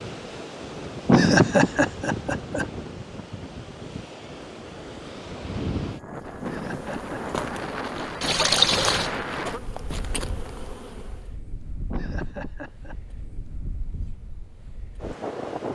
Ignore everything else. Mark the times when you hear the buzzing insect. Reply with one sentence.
The buzzing insect can be heard from 6.2 to 11.3 s.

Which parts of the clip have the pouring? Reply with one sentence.
The pouring can be heard from 8.2 to 9.1 s.